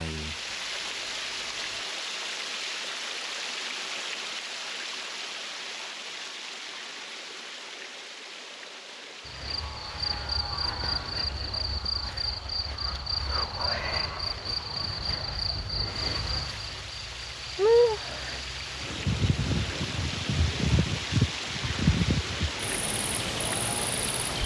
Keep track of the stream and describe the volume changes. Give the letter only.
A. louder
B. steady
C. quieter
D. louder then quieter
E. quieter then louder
E.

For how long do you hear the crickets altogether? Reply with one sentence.
The crickets can be heard for 15 seconds in total.